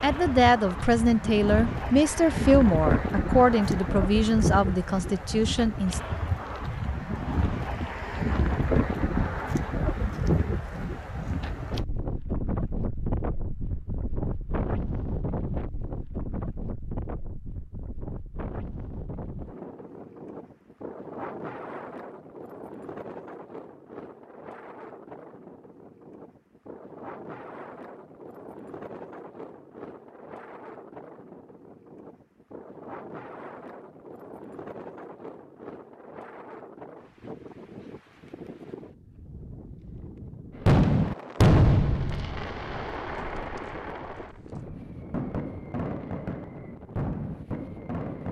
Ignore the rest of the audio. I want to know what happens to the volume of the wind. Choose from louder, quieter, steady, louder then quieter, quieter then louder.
quieter.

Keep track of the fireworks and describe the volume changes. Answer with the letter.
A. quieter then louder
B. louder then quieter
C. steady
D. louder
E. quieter
A.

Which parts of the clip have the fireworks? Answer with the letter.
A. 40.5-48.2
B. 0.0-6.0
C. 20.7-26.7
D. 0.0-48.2
A.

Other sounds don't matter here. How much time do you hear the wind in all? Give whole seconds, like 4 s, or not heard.
48 s.